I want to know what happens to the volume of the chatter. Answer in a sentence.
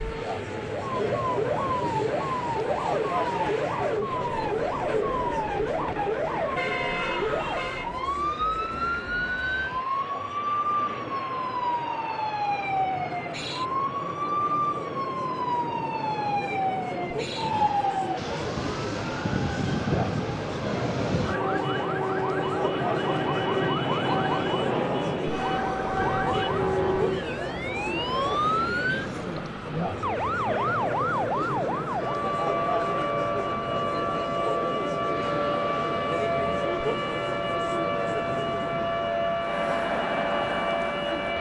The loudness of the chatter goes down, then up.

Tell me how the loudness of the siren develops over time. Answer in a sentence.
The volume of the siren stays about the same.